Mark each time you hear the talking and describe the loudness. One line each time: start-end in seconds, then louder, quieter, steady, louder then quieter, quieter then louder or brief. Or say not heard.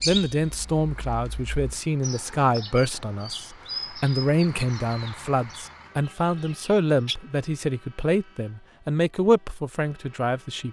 0.1-10.6 steady.